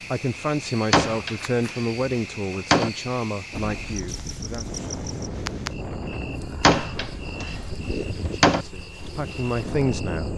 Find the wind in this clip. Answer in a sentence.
The wind can be heard from 3.5 to 10.3 s.